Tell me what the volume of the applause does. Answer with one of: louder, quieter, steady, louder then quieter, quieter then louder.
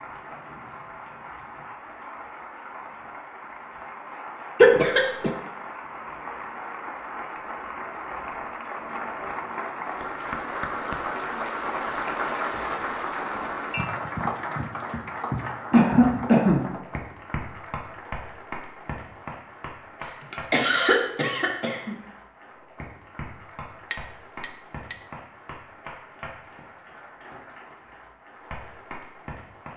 louder then quieter.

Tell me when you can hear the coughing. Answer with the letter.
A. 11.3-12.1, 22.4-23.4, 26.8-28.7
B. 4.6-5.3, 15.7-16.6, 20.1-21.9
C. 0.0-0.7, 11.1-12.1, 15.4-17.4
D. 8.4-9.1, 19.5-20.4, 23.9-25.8
B.